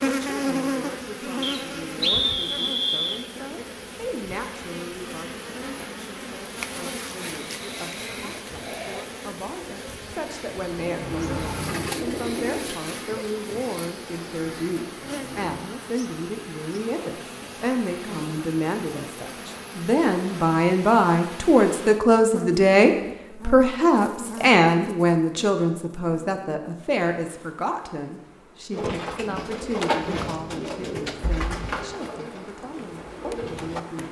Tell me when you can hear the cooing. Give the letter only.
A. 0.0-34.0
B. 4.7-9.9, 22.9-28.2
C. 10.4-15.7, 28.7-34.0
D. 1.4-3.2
C.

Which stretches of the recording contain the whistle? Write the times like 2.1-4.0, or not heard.
1.4-3.2.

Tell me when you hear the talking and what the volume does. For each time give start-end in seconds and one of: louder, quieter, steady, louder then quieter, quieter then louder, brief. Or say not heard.
0.0-34.0 louder then quieter.